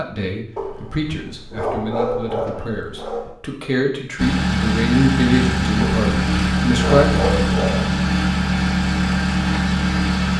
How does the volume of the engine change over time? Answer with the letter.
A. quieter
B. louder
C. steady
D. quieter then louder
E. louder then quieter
C.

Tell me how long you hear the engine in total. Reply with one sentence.
The engine can be heard for 6 seconds in total.